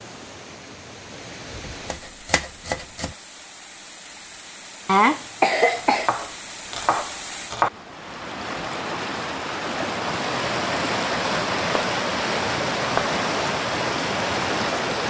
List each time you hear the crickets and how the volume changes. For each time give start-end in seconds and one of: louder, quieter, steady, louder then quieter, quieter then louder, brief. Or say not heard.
not heard.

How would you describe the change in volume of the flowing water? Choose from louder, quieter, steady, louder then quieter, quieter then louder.
louder.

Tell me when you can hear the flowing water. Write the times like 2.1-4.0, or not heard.
0.0-15.0.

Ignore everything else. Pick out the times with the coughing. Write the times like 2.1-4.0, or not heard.
4.8-6.1.